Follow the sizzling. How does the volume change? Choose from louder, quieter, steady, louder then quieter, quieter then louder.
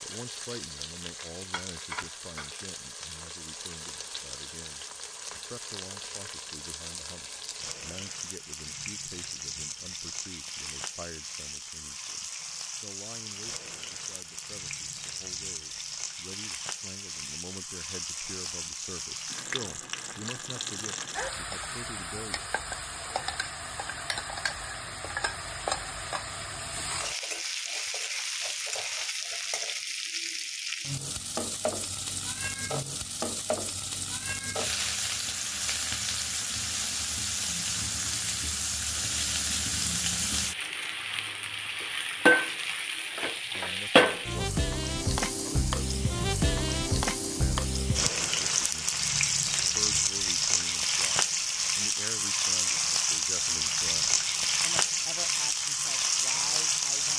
louder.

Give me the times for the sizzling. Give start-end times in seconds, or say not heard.
0.0-57.1.